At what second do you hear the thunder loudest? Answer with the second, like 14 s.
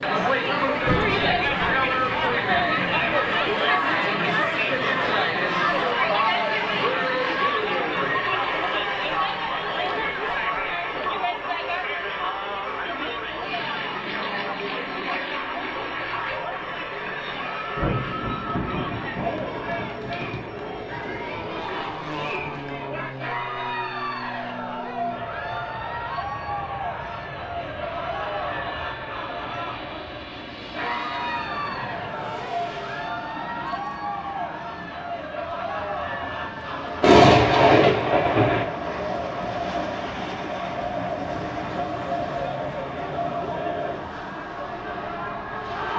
37 s.